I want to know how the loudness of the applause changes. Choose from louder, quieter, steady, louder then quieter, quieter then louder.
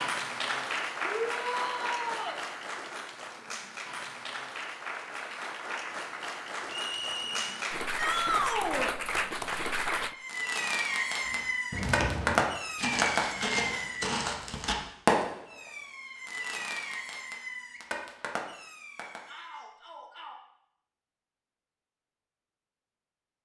quieter then louder.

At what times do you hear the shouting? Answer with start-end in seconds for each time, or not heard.
1.0-2.4, 8.0-8.9, 19.2-20.4.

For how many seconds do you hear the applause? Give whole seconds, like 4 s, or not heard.
10 s.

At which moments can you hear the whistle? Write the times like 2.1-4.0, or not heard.
6.7-7.5.